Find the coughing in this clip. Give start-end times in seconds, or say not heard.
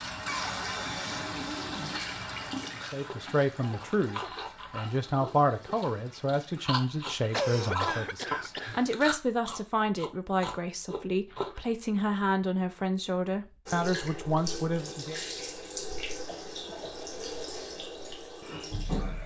3.5-4.3, 7.3-8.8, 16.2-17.1.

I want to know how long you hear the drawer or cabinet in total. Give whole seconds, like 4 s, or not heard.
2 s.